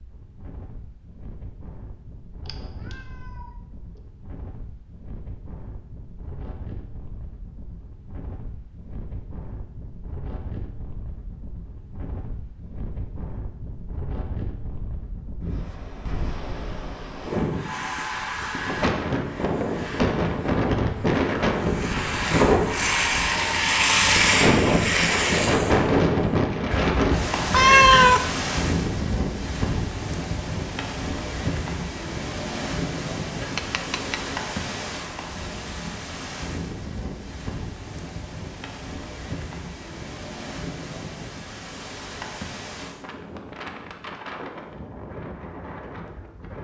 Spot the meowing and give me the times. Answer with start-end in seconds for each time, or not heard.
2.5-3.5, 26.7-28.2, 33.4-34.4.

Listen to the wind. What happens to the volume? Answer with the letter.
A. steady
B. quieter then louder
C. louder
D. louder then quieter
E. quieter
D.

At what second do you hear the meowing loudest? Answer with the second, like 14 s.
28 s.